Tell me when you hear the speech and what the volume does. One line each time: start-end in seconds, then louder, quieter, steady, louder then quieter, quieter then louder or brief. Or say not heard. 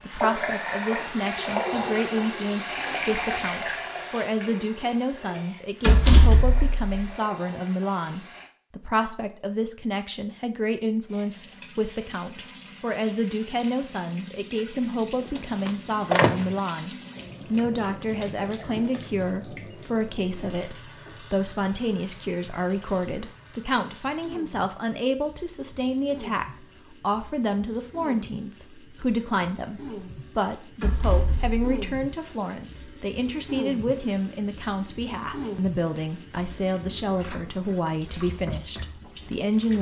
0.0-39.7 steady.